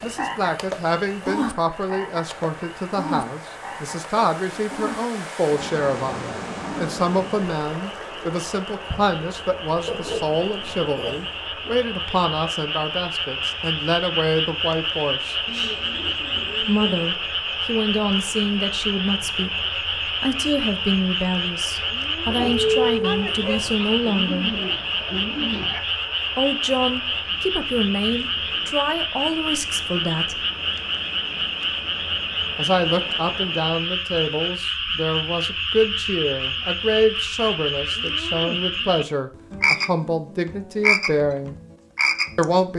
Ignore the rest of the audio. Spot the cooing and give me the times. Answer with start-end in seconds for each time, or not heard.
15.4-17.1, 23.8-25.8.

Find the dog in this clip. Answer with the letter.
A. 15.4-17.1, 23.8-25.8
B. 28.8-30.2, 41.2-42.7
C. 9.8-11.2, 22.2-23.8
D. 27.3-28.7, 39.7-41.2
C.